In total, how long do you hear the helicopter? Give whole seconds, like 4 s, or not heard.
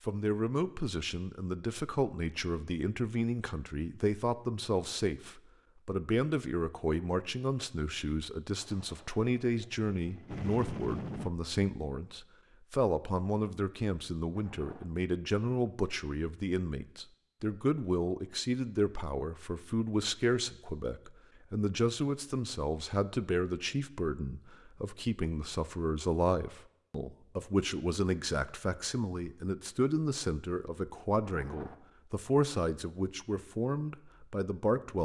3 s.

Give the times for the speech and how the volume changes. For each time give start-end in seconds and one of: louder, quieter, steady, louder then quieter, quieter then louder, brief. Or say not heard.
0.1-34.9 steady.